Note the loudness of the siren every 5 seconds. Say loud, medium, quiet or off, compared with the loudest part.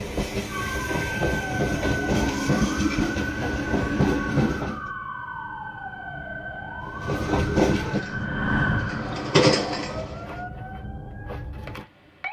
loud, loud, medium.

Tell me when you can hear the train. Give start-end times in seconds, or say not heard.
0.0-4.9, 6.8-10.3.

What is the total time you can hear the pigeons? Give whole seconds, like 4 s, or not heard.
not heard.